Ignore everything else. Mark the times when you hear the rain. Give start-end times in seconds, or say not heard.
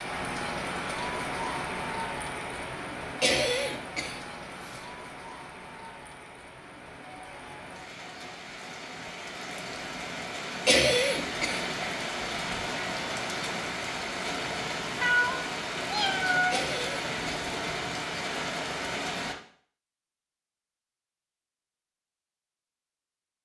0.0-19.4.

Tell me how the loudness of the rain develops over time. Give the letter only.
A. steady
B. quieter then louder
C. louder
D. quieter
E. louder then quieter
B.